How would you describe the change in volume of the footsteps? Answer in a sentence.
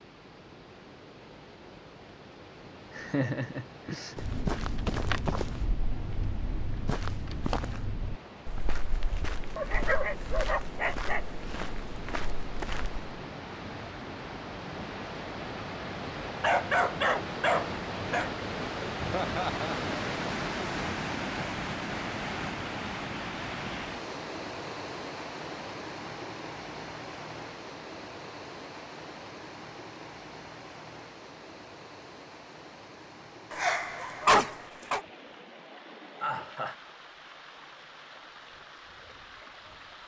The loudness of the footsteps goes down.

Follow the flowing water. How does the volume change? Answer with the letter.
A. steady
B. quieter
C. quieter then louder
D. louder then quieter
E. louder
D.